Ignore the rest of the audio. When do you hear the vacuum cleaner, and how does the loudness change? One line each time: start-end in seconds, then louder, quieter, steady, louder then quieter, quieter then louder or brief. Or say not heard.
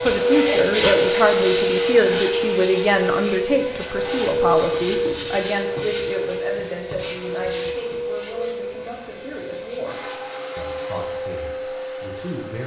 0.0-12.6 quieter.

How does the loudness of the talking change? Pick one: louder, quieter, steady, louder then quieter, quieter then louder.
quieter.